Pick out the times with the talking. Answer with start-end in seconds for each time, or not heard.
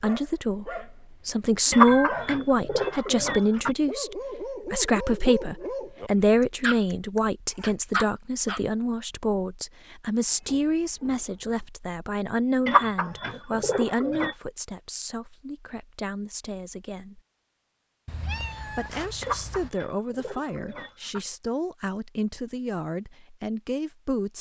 0.0-17.2, 18.6-24.3.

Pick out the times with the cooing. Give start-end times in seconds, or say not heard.
1.7-3.8, 12.7-14.3, 19.2-21.2.